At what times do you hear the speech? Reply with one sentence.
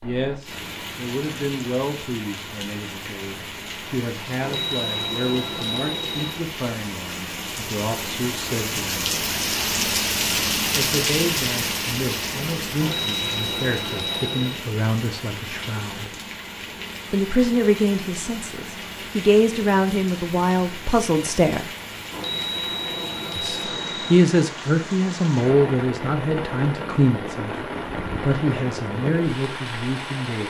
You can hear the speech from 0.0 to 9.1 s, from 10.8 to 16.1 s, from 17.1 to 21.7 s and from 23.4 to 30.4 s.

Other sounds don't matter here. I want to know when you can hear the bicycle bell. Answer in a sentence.
The bicycle bell can be heard from 4.4 to 6.4 s, from 12.8 to 14.6 s and from 22.1 to 24.1 s.